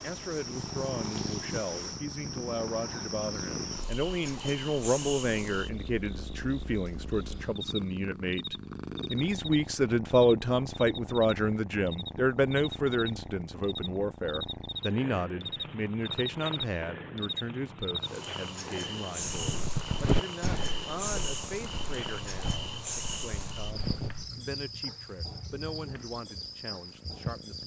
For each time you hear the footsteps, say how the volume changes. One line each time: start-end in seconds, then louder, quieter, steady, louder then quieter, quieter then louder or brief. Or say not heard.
19.2-24.3 quieter then louder.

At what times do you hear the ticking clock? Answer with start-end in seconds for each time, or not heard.
not heard.